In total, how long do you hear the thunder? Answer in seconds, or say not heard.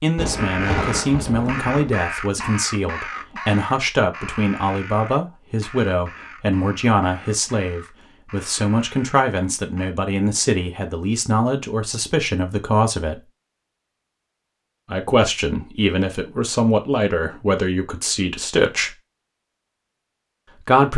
2 s.